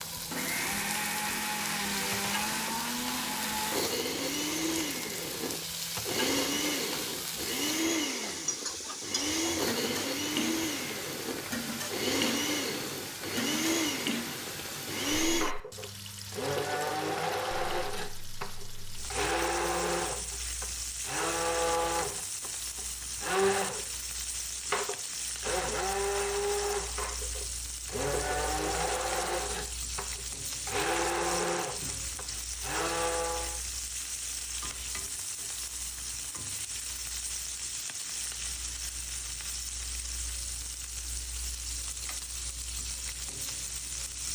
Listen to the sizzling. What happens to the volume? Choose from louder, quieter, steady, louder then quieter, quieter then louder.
steady.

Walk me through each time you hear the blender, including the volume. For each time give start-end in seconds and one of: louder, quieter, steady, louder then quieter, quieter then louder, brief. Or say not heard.
0.1-33.6 steady.